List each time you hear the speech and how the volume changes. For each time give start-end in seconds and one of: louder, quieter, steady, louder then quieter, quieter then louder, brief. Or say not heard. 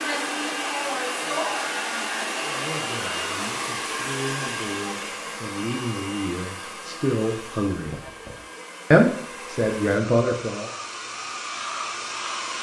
2.5-8.0 louder
8.9-10.7 brief.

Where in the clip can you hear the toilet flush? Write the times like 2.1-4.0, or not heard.
7.8-8.4.